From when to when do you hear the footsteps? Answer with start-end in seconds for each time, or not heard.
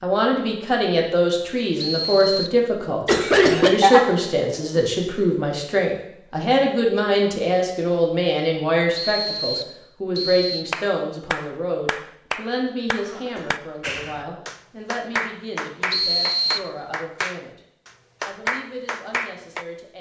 not heard.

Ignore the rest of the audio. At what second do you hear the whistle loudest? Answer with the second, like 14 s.
16 s.